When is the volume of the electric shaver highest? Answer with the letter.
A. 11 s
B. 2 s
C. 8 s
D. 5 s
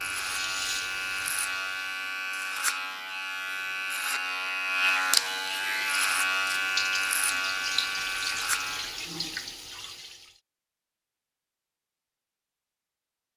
D.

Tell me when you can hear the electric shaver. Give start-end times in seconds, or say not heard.
0.0-9.1.